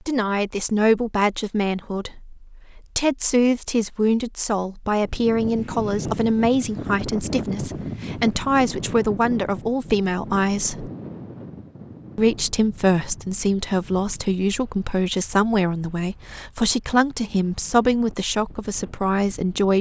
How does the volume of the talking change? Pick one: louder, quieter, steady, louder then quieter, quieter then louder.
steady.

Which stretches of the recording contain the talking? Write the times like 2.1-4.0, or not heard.
0.1-10.9, 12.2-19.7.